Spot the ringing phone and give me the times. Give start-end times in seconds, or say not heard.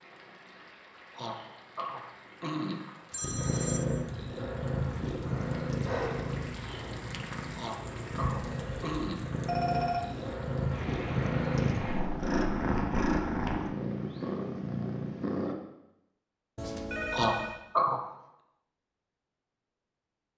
3.1-3.9, 9.4-10.3, 16.6-17.6.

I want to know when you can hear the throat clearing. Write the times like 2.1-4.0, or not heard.
1.1-2.8, 7.5-9.2, 17.1-18.0.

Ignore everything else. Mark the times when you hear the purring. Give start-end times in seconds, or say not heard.
3.2-15.6.